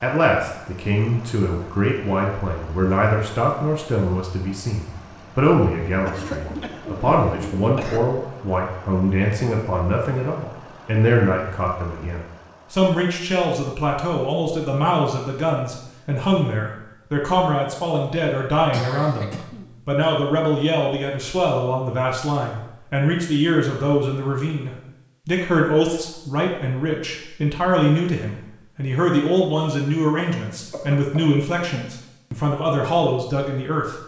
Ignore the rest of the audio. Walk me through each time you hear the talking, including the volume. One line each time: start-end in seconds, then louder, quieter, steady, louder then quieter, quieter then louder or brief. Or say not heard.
0.0-34.0 steady.